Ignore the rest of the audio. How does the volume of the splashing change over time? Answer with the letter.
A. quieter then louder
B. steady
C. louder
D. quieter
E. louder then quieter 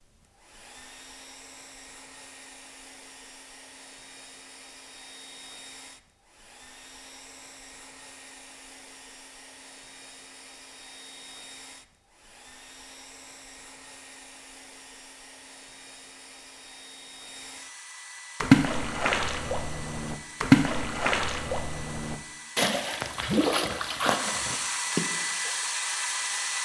E.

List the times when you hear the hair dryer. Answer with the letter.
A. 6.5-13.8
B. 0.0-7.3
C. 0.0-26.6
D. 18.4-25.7
C.